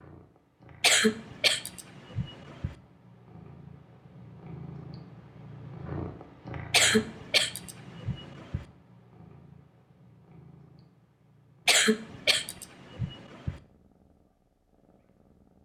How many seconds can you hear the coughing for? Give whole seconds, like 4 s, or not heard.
6 s.